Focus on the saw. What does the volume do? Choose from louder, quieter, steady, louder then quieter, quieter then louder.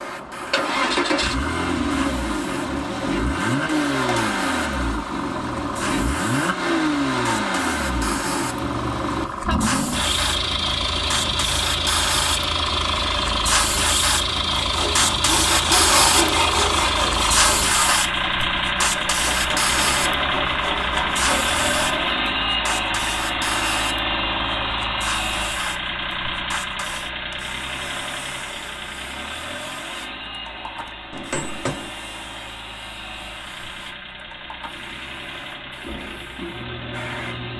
quieter.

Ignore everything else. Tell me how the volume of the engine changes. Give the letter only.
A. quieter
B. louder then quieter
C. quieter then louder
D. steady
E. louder
A.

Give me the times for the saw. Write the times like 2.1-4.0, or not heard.
14.6-22.2.